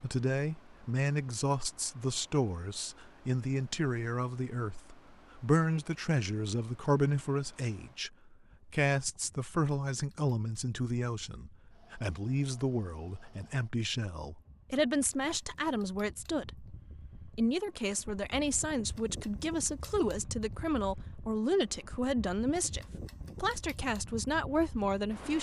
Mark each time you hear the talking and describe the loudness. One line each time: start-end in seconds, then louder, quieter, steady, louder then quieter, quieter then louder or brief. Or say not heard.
0.0-25.3 steady.